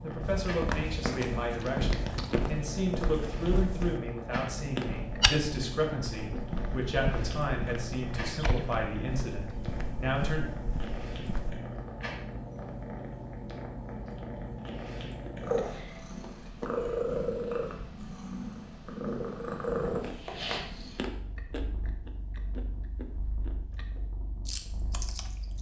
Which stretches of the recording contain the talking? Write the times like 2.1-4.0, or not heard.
0.0-10.4.